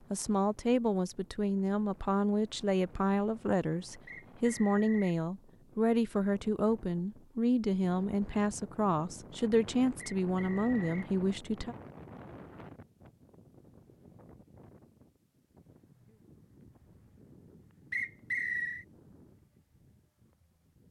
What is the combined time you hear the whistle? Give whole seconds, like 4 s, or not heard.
3 s.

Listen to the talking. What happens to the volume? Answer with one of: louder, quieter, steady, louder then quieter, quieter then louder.
steady.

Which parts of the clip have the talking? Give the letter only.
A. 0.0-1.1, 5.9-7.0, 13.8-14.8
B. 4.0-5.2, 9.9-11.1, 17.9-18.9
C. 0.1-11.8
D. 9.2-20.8
C.